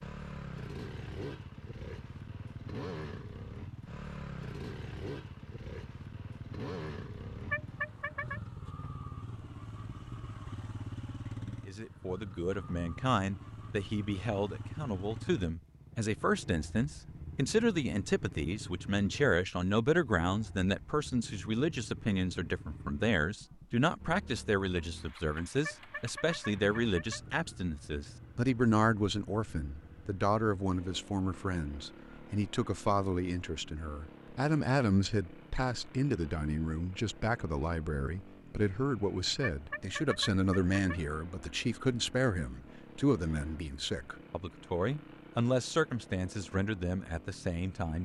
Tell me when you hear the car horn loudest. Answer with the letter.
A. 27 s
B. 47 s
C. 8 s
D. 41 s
C.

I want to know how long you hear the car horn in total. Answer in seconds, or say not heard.
4 s.